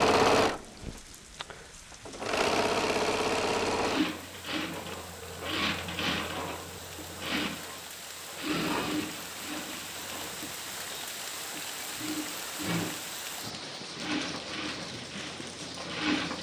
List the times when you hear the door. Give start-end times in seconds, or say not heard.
not heard.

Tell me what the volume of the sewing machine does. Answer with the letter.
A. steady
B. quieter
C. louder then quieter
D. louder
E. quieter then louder
B.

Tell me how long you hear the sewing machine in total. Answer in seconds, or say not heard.
16 s.